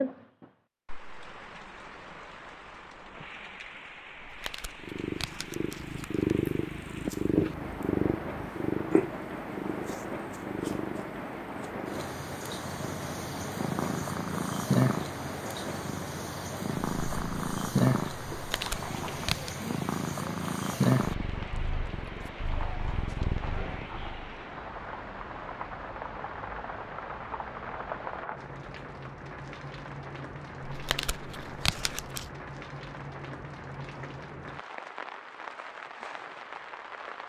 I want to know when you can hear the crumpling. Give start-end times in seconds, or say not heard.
4.2-6.2, 18.3-19.6, 30.6-32.3.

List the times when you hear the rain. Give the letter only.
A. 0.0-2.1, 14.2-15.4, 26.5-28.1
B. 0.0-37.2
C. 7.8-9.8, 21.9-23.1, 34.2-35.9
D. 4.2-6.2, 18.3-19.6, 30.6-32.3
B.